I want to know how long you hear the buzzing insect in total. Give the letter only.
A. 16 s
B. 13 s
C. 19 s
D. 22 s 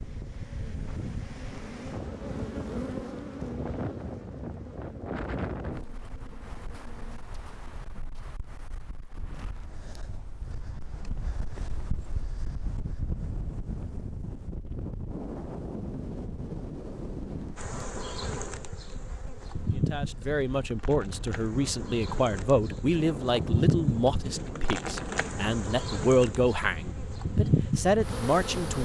C.